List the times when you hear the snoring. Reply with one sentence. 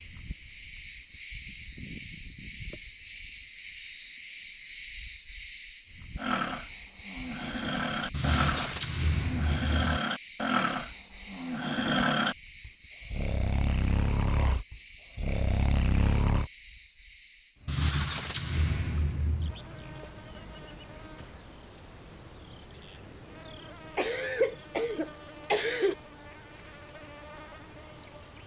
The snoring can be heard from 6.2 to 16.5 s.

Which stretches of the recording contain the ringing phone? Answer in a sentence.
The ringing phone can't be heard in this clip.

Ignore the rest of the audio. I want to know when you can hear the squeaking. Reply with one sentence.
You can hear the squeaking from 8.1 to 10.0 s and from 17.6 to 19.6 s.